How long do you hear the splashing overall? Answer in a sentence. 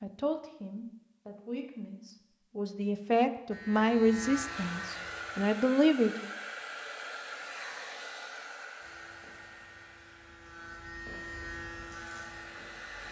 You can't hear the splashing here.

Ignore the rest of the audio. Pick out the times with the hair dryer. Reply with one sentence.
You can hear the hair dryer from 4.2 to 13.0 s.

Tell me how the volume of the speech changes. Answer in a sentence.
The loudness of the speech goes up.